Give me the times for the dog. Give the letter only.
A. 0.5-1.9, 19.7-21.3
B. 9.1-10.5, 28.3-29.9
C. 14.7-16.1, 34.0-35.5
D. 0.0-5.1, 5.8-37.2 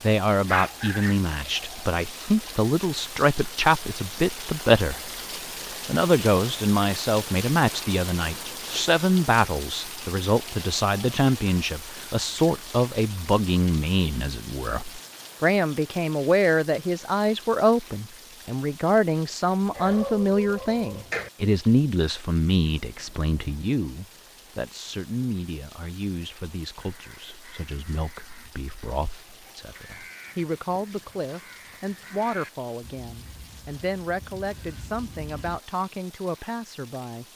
A.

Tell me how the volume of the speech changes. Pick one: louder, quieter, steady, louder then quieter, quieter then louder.
quieter.